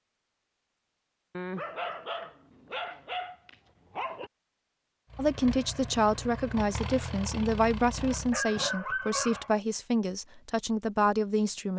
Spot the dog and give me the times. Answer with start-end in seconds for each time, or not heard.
1.3-4.3, 8.0-9.6.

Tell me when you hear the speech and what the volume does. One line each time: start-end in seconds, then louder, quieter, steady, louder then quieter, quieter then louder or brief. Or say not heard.
5.2-11.7 steady.